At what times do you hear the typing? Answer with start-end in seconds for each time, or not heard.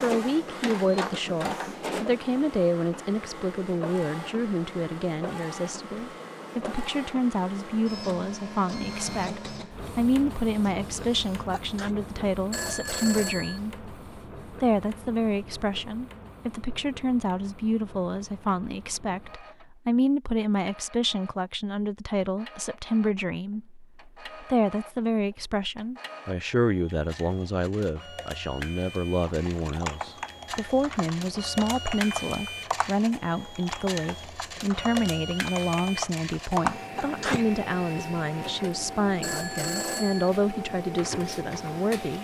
29.2-37.8.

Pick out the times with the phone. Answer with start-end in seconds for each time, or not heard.
12.5-13.8, 39.2-40.4.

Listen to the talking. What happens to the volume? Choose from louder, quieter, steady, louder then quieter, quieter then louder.
steady.